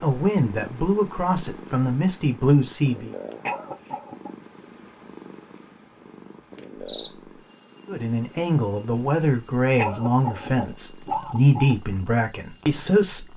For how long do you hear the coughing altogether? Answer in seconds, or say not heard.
3 s.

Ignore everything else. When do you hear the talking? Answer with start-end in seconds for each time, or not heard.
0.0-3.1, 7.8-13.3.